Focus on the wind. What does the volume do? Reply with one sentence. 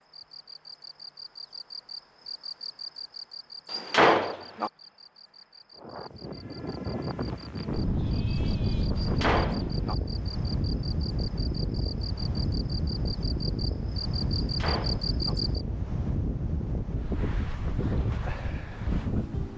The loudness of the wind stays about the same.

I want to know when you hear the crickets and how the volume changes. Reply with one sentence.
The crickets can be heard from 0.0 to 15.7 s, getting quieter then louder.